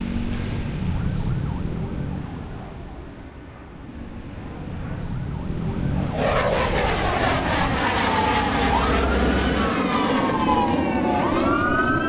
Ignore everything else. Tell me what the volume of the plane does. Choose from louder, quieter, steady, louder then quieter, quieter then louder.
louder.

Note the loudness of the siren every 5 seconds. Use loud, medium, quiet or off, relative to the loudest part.
medium, loud, loud.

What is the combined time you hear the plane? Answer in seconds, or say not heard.
12 s.